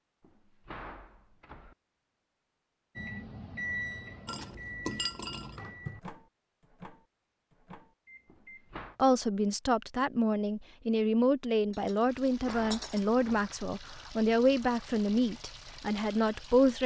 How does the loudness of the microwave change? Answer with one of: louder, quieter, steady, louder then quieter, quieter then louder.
quieter.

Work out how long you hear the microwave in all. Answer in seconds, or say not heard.
6 s.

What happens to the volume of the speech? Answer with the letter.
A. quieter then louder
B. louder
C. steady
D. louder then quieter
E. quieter
C.